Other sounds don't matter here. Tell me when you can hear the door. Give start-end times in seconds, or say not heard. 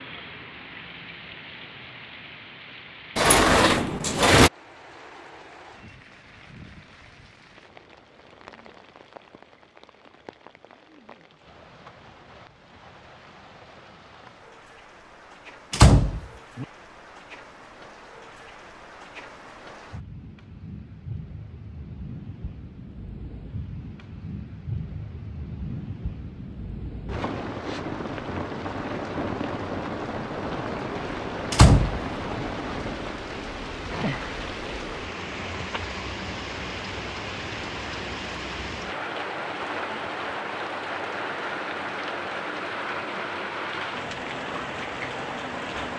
3.1-4.5, 15.7-16.6, 31.5-32.5.